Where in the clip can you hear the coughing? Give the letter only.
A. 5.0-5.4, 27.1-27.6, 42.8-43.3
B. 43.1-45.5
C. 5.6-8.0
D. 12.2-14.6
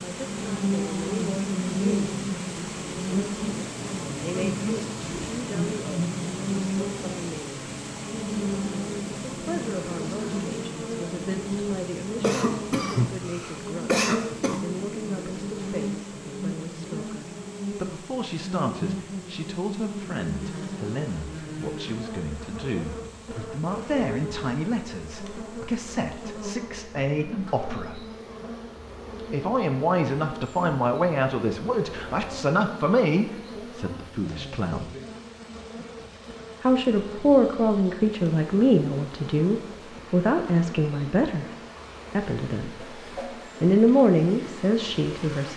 D.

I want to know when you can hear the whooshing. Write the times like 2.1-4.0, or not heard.
5.0-5.4, 27.1-27.6, 42.8-43.3.